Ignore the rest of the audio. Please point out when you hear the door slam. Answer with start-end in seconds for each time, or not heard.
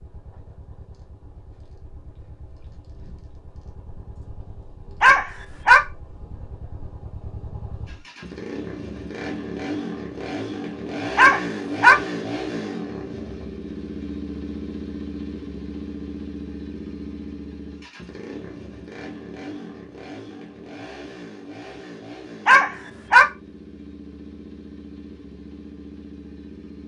not heard.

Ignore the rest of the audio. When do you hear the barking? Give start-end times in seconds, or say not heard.
5.0-5.8, 11.2-11.9, 22.4-23.2.